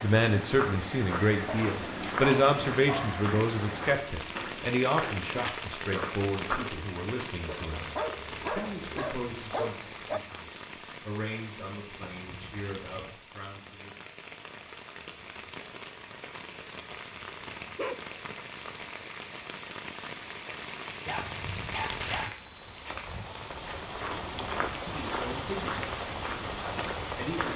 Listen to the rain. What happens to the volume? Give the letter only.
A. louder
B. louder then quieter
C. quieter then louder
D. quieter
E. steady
C.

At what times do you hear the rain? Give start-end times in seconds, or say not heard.
0.0-27.5.